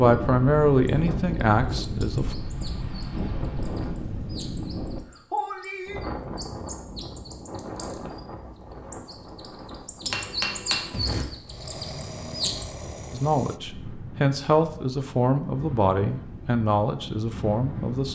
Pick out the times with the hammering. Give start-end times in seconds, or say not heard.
10.1-11.2.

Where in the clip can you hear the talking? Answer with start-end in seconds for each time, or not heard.
0.0-2.4, 13.1-18.0.